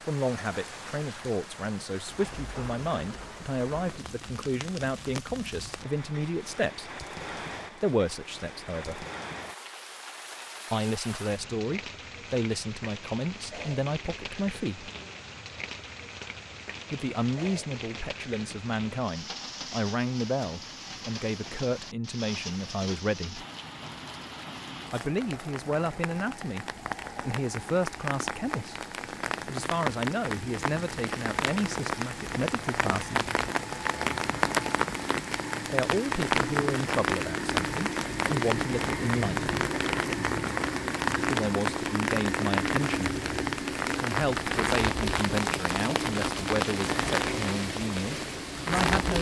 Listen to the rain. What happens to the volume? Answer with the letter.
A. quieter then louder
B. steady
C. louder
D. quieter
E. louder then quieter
C.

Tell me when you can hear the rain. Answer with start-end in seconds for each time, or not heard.
0.0-49.1.